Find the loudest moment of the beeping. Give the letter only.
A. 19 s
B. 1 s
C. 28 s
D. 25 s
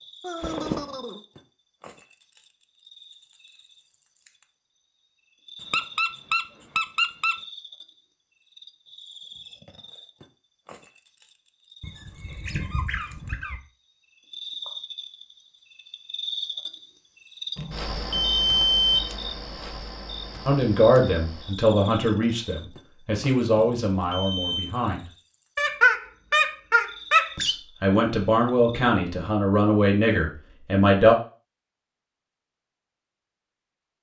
A.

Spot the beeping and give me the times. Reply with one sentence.
You can hear the beeping from 0.2 to 1.1 s, from 17.6 to 19.0 s and from 23.6 to 24.8 s.